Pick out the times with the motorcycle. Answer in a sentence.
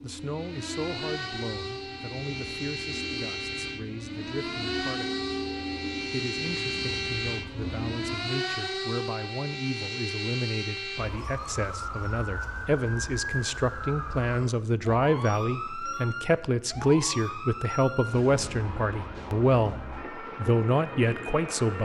You can hear the motorcycle from 0.0 to 8.3 s.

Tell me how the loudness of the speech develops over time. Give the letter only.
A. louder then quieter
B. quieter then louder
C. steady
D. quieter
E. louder
E.